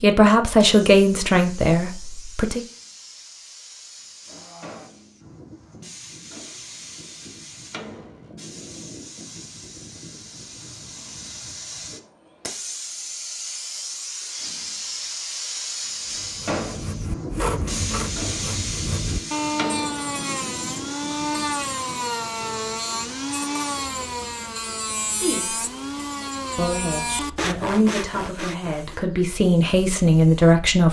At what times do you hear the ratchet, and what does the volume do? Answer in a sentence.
The ratchet can't be heard in this clip.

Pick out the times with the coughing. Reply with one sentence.
You can hear the coughing from 4.2 to 4.9 s.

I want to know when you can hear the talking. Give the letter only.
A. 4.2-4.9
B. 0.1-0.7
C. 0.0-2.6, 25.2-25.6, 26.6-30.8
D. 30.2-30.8
C.